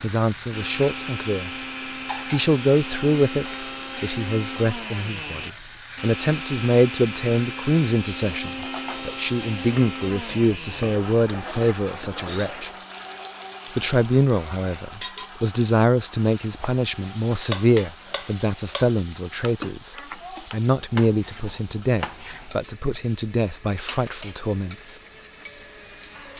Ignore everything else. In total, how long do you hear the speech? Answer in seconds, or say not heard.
23 s.